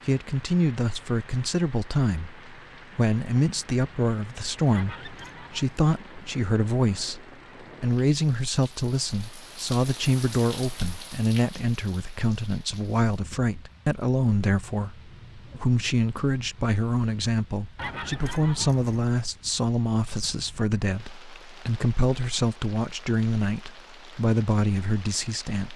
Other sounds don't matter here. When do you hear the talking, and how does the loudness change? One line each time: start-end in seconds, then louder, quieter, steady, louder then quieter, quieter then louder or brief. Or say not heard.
0.1-25.7 steady.